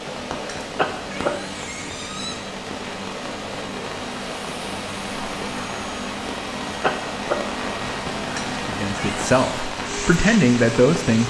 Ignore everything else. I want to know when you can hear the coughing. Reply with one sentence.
The coughing can be heard from 0.8 to 1.3 s and from 6.8 to 7.3 s.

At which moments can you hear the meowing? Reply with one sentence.
You can hear the meowing from 0.4 to 2.4 s and from 8.3 to 9.6 s.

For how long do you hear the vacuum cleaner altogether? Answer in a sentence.
You can hear the vacuum cleaner for 11 seconds altogether.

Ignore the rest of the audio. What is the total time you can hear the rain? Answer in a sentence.
You can hear the rain for 11 seconds altogether.